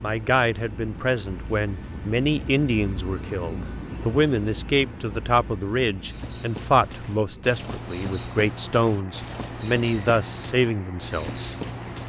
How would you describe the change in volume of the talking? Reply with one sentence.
The loudness of the talking stays about the same.